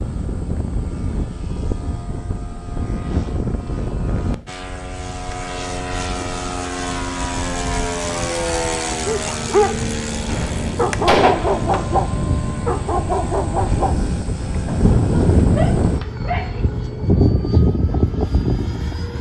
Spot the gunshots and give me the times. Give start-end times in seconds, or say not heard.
10.2-11.8.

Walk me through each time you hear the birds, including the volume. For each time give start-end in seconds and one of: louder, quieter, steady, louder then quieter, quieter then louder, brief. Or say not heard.
not heard.